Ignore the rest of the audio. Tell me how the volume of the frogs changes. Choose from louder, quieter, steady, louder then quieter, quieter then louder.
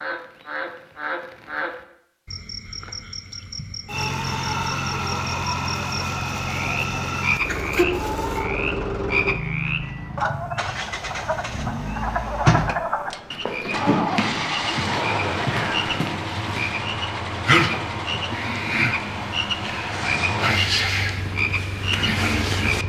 louder.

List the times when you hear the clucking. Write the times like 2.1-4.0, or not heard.
3.4-8.4.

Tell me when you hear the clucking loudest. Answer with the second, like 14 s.
8 s.